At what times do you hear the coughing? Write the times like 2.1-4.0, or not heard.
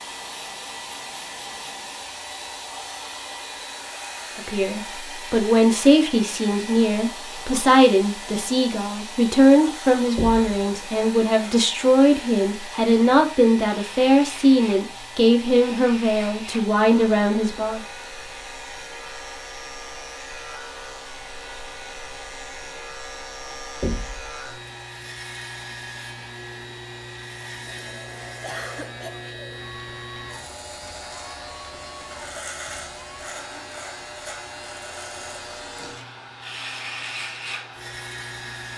28.4-29.2.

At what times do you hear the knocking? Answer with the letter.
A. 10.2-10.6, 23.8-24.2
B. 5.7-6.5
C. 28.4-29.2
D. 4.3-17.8
A.